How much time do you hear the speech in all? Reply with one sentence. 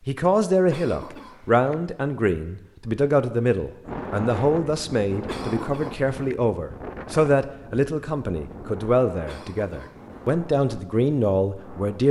You can hear the speech for 12 seconds altogether.